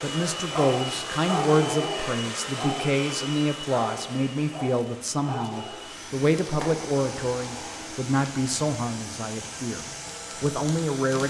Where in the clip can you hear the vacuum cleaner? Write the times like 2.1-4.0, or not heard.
0.0-11.2.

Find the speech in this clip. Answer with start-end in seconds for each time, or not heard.
0.0-11.2.